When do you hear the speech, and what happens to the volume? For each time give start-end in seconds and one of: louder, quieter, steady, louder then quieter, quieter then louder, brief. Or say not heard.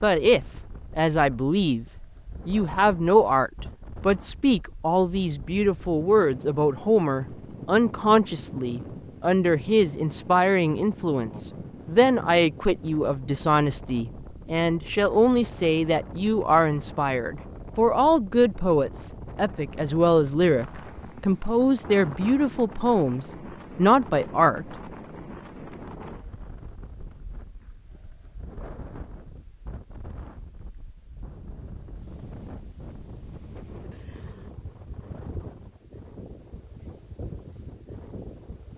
0.0-1.9 brief
2.5-24.6 steady.